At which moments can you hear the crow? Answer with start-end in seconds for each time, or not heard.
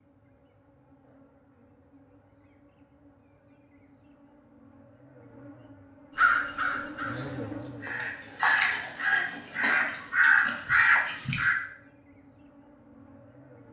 6.2-11.6.